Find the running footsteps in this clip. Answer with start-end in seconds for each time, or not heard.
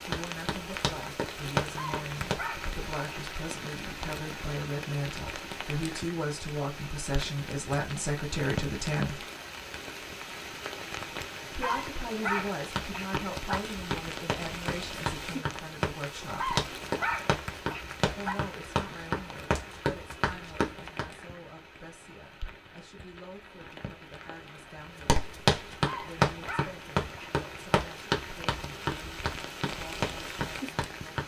0.0-2.7, 12.3-21.1, 25.1-31.2.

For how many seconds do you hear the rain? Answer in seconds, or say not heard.
31 s.